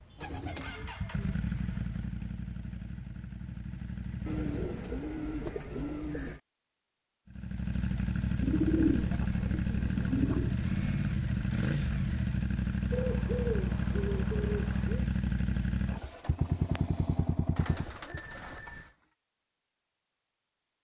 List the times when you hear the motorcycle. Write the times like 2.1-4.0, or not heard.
0.0-5.0, 7.3-18.3.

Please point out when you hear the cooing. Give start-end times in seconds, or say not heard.
0.1-0.9, 4.2-6.4, 8.4-10.6, 12.9-15.1, 17.6-18.9.